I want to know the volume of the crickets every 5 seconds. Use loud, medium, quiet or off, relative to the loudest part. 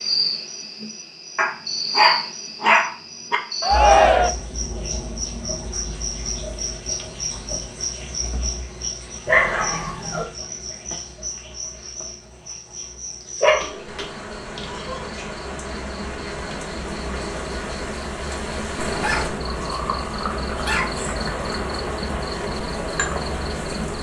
loud, loud, medium, loud, loud.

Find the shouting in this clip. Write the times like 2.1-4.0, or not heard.
3.6-4.3.